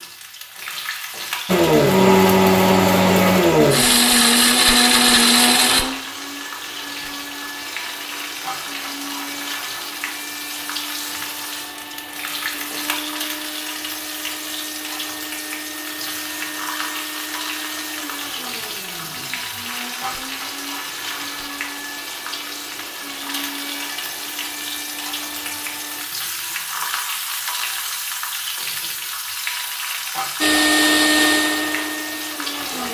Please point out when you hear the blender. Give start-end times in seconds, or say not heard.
1.4-26.1, 30.4-32.8.